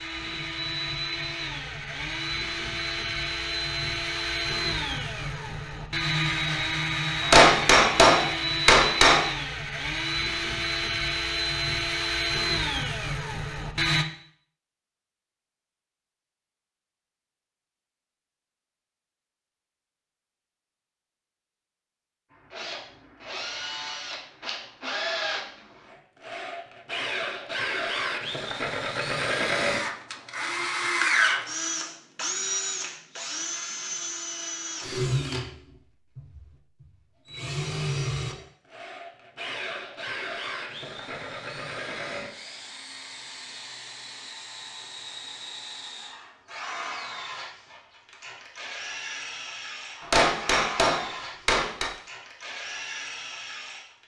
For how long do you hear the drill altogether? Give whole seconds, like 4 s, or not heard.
46 s.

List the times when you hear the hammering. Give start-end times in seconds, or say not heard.
7.2-9.2, 50.0-51.9.